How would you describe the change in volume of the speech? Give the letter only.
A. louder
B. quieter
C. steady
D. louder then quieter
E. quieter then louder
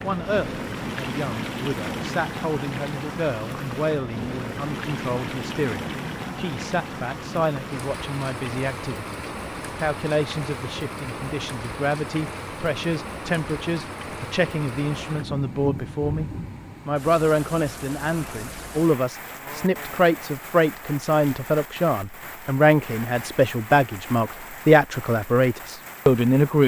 A.